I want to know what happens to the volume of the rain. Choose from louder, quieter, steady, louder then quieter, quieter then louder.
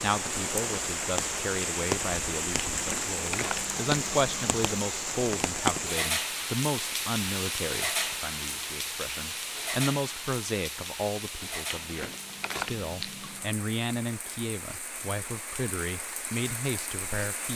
quieter.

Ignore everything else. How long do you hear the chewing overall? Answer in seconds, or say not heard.
4 s.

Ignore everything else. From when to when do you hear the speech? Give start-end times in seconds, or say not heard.
0.0-17.5.